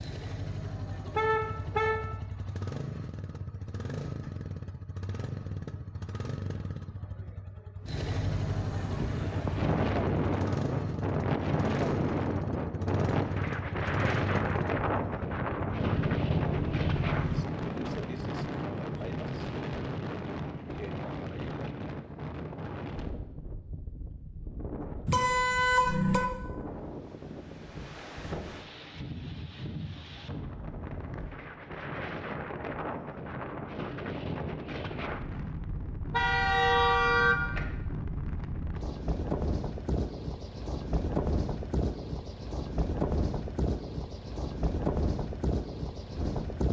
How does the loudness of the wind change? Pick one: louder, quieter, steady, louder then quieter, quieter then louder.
quieter then louder.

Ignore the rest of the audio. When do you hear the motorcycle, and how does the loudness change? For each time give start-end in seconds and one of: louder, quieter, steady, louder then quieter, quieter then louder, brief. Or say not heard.
0.0-17.4 louder.